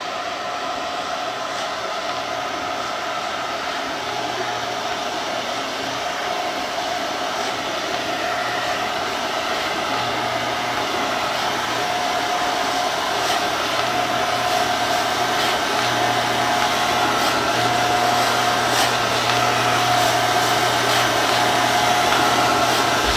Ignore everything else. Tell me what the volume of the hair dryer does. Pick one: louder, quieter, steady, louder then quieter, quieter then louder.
louder.